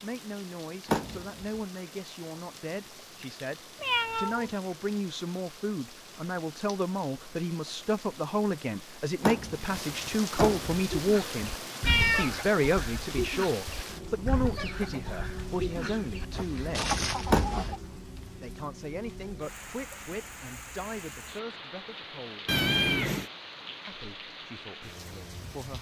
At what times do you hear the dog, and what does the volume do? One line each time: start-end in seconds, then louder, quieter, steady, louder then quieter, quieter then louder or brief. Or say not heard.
not heard.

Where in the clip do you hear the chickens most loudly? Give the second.
17 s.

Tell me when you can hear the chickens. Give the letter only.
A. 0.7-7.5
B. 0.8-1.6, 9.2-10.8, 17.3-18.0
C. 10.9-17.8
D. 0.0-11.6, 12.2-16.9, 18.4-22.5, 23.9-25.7
C.